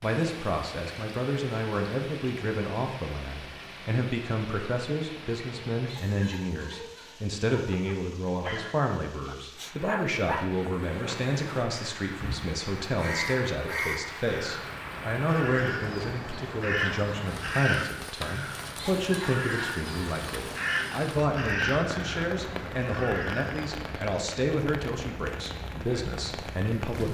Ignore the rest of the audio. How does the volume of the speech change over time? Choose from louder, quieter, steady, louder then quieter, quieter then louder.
steady.